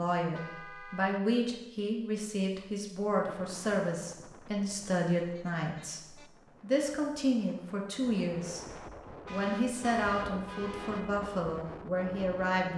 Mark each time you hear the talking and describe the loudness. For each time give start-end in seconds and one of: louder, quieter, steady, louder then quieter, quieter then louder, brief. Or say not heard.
0.0-12.7 steady.